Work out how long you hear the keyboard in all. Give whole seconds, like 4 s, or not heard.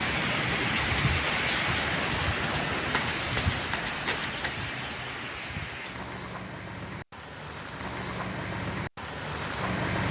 not heard.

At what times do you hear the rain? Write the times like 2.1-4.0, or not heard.
0.0-10.0.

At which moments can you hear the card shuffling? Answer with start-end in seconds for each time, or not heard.
2.9-4.4.